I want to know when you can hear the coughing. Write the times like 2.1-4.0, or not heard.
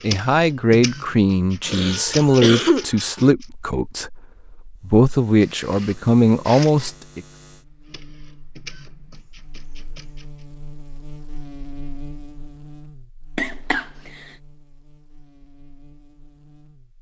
1.6-3.3, 13.3-14.2.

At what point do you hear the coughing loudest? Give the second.
3 s.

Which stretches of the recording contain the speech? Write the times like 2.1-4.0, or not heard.
0.0-7.2.